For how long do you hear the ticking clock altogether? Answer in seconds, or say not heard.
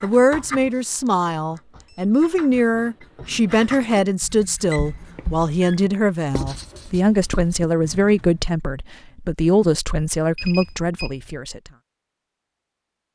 not heard.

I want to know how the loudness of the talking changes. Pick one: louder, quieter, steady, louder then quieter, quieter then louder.
steady.